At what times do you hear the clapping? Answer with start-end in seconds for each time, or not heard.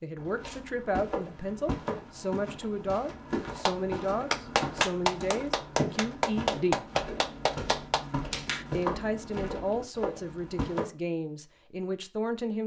3.6-8.7.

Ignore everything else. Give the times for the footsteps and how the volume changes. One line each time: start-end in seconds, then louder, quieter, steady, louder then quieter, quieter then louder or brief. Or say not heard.
0.1-10.8 steady.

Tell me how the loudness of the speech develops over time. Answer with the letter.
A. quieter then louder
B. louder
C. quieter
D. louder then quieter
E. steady
E.